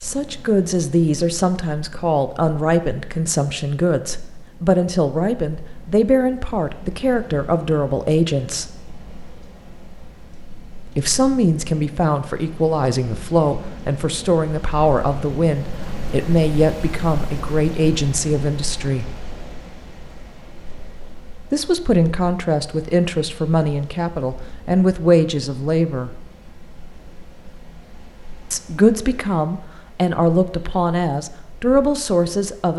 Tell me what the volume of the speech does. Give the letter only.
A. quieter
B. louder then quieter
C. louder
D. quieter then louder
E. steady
E.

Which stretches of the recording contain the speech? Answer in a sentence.
You can hear the speech from 0.0 to 8.7 s, from 10.8 to 19.1 s, from 21.5 to 26.1 s and from 28.5 to 32.7 s.